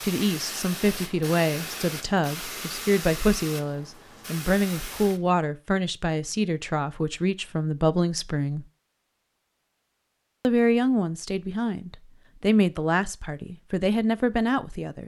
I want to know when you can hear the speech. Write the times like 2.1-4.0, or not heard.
0.0-8.7, 10.4-15.0.